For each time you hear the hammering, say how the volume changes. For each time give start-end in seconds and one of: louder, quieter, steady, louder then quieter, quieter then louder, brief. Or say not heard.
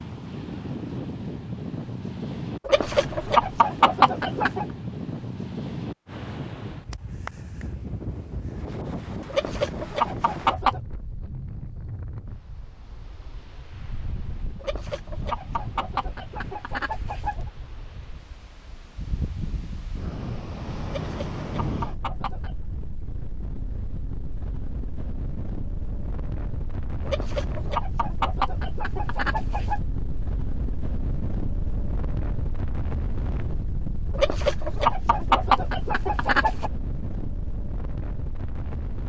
not heard.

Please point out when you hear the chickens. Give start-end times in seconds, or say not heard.
2.6-4.7, 9.3-10.8, 14.6-17.5, 20.9-22.6, 27.1-29.8, 34.1-36.7.